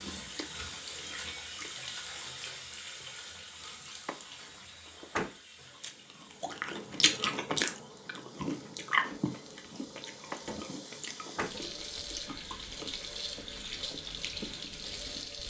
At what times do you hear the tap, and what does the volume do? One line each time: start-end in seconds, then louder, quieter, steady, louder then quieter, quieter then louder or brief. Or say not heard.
0.0-15.4 quieter then louder.